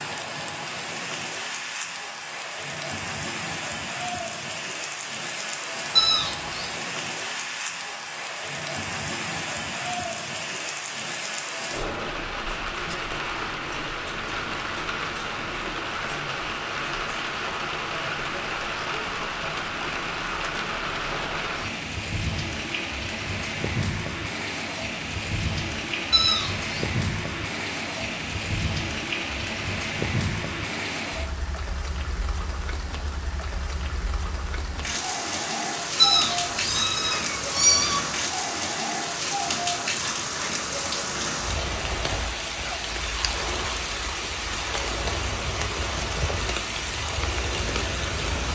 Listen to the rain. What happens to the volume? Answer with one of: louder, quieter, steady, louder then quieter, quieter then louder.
steady.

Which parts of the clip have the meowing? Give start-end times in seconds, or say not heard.
6.0-6.8, 26.1-26.9, 36.0-38.0.